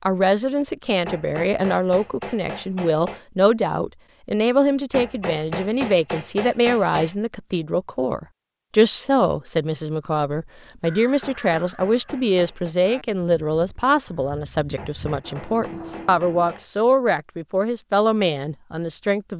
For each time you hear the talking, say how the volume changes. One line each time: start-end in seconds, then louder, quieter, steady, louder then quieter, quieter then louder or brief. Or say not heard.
0.0-19.3 steady.